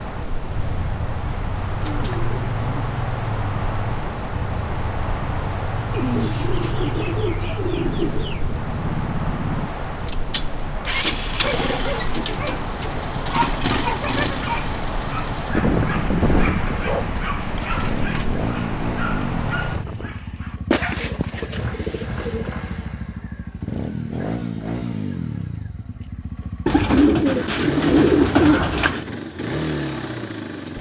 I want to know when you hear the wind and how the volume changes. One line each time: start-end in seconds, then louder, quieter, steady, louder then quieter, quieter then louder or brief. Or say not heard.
0.0-20.1 steady.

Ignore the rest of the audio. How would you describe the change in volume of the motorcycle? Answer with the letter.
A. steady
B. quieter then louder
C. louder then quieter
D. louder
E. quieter
A.